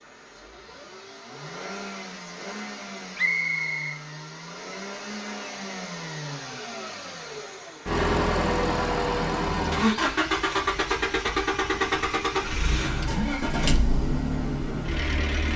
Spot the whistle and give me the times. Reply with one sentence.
You can hear the whistle from 3.1 to 4.0 s.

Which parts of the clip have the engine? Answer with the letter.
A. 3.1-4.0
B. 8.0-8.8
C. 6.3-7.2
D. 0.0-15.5
D.